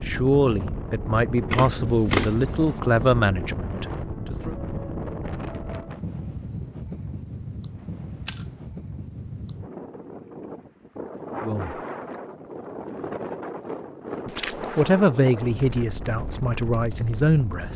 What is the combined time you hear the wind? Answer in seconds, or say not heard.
18 s.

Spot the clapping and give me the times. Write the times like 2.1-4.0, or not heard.
not heard.